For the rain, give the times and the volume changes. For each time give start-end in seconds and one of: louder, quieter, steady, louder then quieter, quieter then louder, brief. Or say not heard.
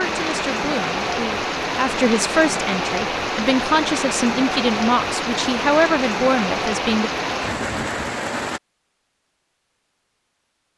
0.0-8.6 steady.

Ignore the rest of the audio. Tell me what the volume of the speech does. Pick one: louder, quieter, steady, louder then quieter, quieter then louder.
louder.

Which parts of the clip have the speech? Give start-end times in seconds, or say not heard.
0.0-7.1.